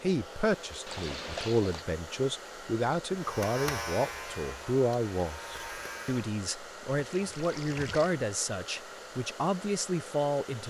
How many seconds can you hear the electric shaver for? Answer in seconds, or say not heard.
3 s.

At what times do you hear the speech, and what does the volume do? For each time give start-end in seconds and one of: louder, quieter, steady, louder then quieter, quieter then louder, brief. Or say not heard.
0.0-10.6 steady.